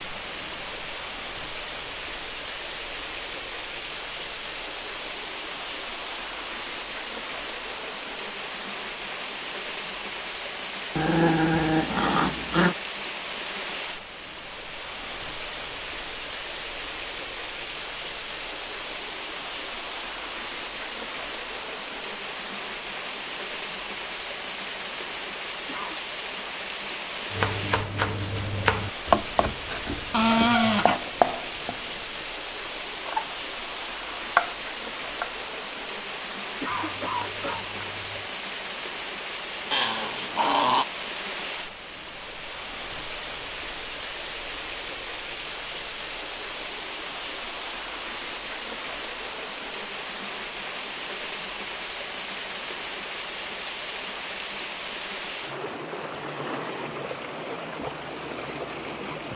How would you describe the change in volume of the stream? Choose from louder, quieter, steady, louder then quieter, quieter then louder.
steady.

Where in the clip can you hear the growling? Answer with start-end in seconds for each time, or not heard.
10.9-12.8, 30.1-31.0, 39.7-40.9.